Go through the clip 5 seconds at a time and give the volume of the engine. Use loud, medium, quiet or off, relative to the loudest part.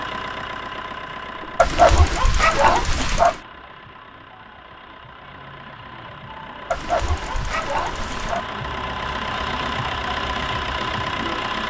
medium, medium, loud.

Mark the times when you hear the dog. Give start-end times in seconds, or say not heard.
1.6-3.4, 6.7-8.4.